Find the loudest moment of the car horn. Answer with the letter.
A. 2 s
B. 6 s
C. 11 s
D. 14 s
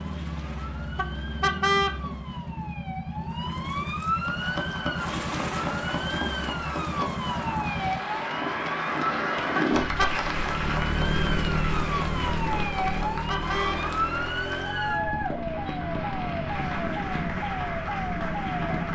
A.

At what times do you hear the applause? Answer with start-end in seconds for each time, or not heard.
4.2-18.9.